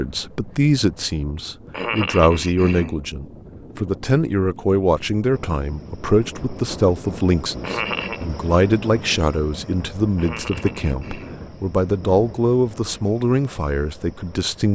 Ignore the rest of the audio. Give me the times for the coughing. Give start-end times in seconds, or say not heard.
1.7-3.0, 7.6-8.2, 10.2-11.4.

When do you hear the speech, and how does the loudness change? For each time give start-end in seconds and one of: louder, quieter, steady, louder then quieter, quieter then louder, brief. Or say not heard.
0.0-14.7 steady.